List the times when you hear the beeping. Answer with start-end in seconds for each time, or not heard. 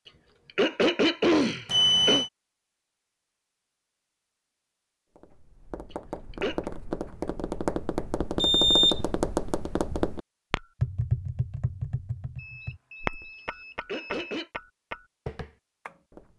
1.6-2.3, 8.4-9.0, 12.3-14.4.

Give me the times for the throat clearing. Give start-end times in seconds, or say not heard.
0.1-2.2, 5.9-6.7, 13.3-14.5.